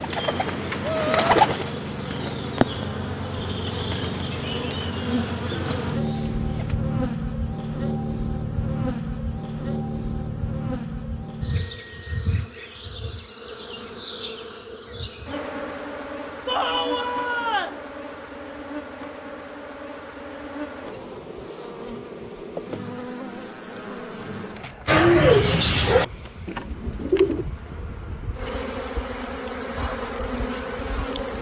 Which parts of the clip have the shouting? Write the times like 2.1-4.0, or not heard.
0.8-1.3, 16.4-17.8.